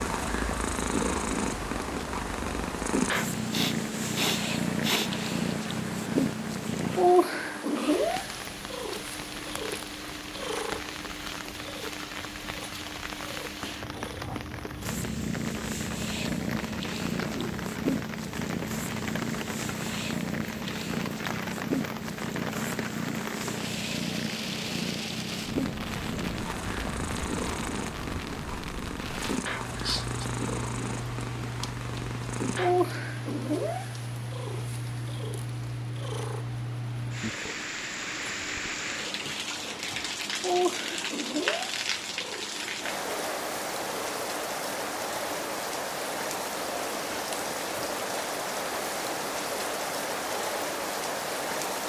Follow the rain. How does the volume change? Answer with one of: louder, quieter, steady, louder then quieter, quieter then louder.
louder.